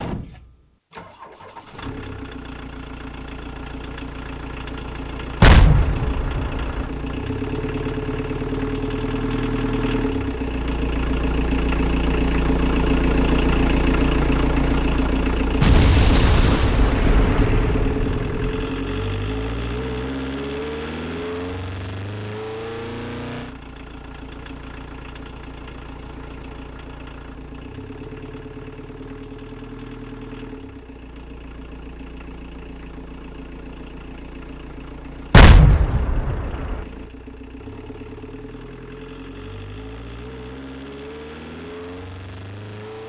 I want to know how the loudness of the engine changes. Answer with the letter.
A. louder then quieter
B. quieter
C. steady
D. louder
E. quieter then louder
A.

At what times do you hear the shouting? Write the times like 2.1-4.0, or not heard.
not heard.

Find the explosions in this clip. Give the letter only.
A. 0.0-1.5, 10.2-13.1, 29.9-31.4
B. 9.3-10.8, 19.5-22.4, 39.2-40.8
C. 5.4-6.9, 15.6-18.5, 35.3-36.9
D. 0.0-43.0
C.